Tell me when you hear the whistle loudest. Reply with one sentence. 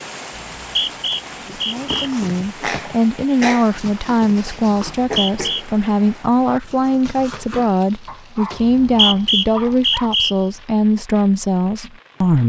The loudest moment of the whistle is at 9 seconds.